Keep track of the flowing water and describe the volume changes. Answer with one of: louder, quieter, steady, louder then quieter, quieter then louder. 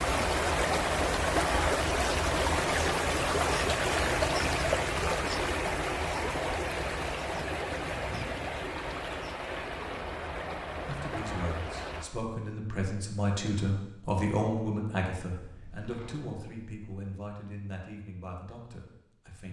quieter.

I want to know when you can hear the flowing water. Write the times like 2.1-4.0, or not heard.
0.0-12.1.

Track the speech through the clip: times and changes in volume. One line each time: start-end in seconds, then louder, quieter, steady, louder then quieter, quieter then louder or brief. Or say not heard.
10.8-19.4 louder then quieter.